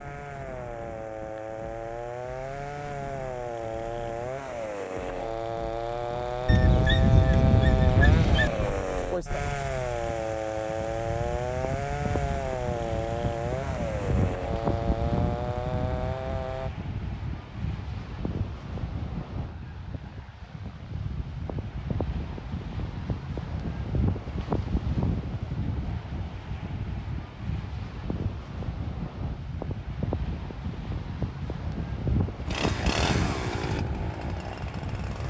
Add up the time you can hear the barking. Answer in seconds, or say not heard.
2 s.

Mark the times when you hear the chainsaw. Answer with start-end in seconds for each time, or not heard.
0.0-16.7, 32.5-35.2.